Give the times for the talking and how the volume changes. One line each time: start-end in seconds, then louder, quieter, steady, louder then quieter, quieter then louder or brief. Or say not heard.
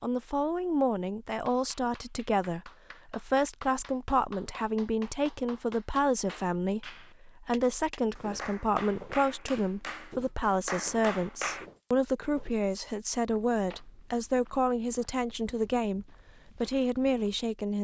0.0-17.7 steady.